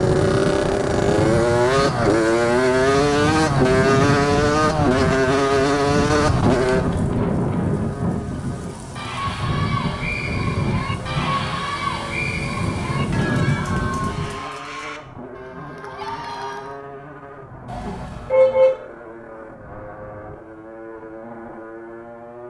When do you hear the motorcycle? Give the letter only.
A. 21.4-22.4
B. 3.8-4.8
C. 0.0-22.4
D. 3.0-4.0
C.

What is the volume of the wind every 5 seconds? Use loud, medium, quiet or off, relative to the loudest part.
loud, loud, loud, off, off.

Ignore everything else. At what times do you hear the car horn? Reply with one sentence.
You can hear the car horn from 17.6 to 18.7 s.